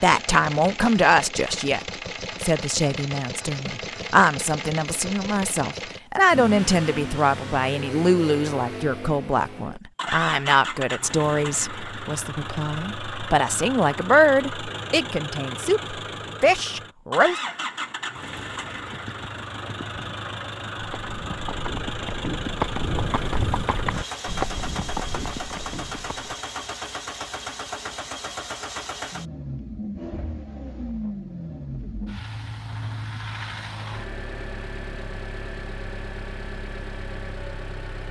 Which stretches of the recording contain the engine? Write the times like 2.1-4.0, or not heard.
0.0-38.0.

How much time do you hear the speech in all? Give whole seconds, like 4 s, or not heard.
17 s.